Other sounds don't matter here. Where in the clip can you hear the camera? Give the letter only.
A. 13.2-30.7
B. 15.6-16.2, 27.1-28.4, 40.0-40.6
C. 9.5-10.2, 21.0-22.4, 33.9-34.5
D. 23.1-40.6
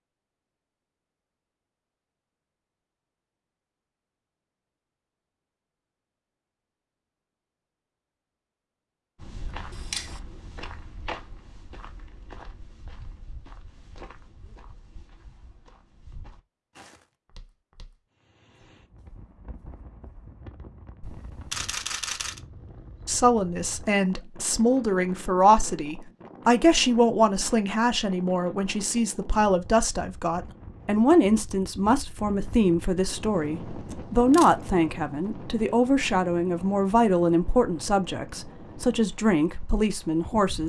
C.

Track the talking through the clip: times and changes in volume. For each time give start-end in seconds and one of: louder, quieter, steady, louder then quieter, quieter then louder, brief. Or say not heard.
23.1-40.6 steady.